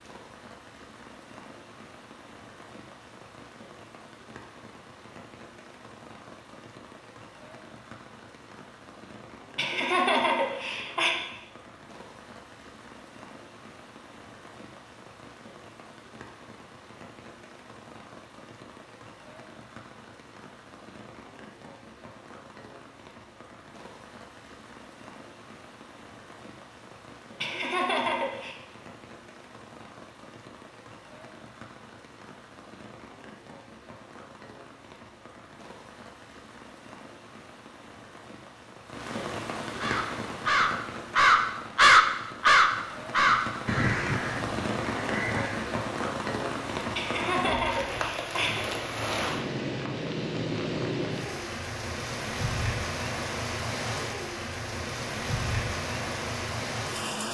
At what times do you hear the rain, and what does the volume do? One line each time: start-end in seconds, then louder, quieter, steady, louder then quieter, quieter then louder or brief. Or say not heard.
0.0-57.2 louder.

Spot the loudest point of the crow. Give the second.
42 s.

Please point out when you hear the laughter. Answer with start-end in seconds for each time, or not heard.
9.6-11.2, 27.4-28.6, 47.0-48.6.